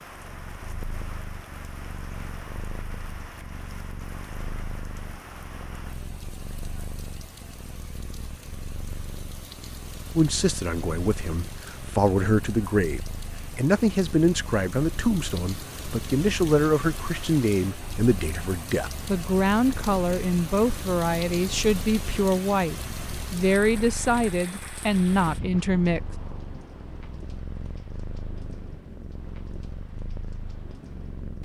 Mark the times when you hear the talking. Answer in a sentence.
The talking can be heard from 10.2 to 26.0 s.